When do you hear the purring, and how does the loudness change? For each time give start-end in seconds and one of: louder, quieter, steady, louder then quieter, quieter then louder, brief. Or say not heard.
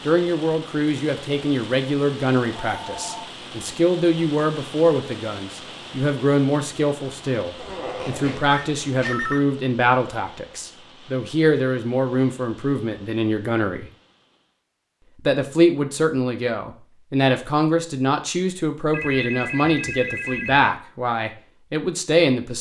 not heard.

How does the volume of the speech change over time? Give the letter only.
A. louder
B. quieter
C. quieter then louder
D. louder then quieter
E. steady
E.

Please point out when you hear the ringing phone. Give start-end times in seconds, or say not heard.
2.5-3.3, 8.5-9.4, 18.9-20.7.